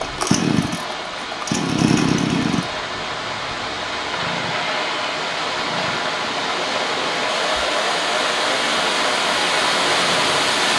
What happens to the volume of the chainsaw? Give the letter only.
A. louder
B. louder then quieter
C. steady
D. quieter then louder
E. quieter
E.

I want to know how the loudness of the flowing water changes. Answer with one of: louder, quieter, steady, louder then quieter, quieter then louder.
louder.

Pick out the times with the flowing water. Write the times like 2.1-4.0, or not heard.
0.0-10.7.